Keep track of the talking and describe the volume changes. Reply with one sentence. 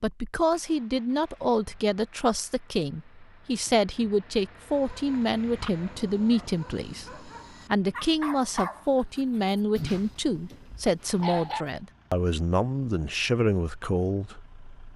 The loudness of the talking stays about the same.